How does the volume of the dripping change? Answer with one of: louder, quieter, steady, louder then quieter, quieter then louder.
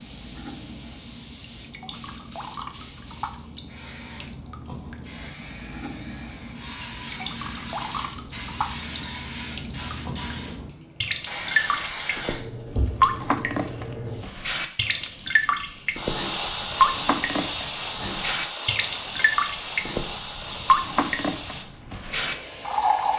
louder.